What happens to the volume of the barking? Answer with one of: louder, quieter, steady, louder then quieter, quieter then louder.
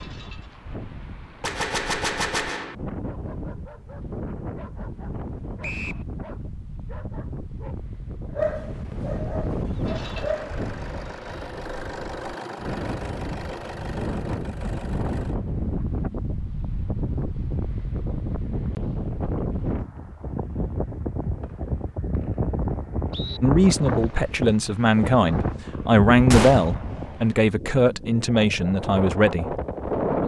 louder then quieter.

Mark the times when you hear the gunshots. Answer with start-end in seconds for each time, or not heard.
1.4-2.8, 26.3-26.8.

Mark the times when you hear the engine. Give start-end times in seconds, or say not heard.
9.9-15.3.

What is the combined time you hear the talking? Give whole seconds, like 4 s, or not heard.
6 s.